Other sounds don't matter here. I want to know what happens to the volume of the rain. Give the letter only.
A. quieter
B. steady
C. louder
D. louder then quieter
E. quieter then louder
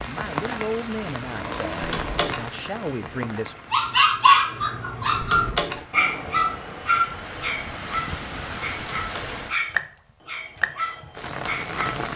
E.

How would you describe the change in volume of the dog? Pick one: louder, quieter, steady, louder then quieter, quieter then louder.
quieter.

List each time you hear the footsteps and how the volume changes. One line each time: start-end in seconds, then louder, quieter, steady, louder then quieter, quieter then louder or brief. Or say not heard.
not heard.